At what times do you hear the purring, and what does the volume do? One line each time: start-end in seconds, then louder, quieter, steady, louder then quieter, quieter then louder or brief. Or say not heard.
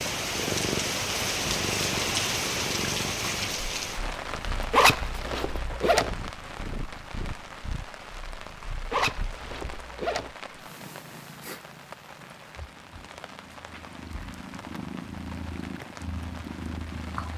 0.0-17.3 quieter then louder.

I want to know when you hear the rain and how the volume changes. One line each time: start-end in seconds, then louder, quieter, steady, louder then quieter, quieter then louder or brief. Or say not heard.
0.0-17.3 quieter.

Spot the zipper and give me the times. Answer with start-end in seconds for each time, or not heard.
4.7-6.2, 8.9-10.3.